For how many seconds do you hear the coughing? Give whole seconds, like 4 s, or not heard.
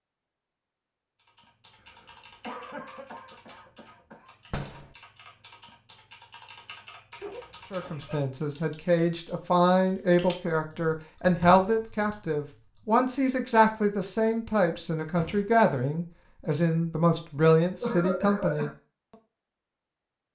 4 s.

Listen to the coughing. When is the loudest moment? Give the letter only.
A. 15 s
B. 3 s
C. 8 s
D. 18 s
D.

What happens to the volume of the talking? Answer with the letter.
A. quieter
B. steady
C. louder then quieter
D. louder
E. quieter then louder
B.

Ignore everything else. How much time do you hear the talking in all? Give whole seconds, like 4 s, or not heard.
11 s.